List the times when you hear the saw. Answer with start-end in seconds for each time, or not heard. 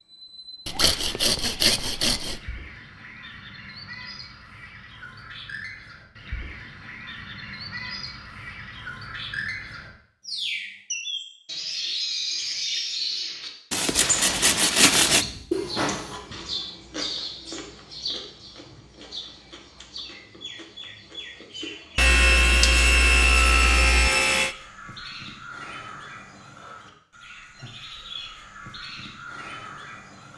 0.7-2.4, 13.7-15.2, 21.9-24.6.